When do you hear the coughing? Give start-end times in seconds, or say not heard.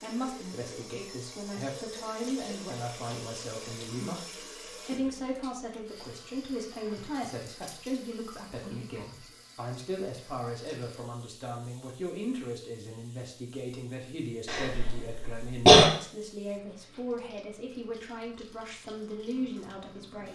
14.4-15.9.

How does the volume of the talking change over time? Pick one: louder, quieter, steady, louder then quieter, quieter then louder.
steady.